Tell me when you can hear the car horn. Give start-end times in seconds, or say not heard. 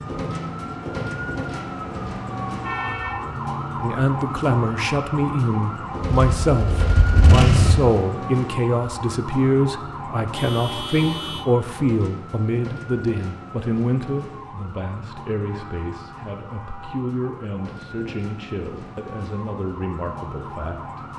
2.6-3.2, 10.3-11.4, 15.6-16.9.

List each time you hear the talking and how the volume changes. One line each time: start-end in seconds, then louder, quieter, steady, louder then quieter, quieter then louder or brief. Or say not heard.
3.8-21.1 quieter.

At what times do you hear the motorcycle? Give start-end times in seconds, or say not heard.
6.1-7.8.